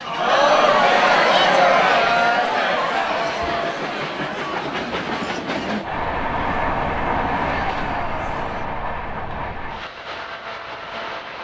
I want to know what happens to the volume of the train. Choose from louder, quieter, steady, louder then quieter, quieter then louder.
louder then quieter.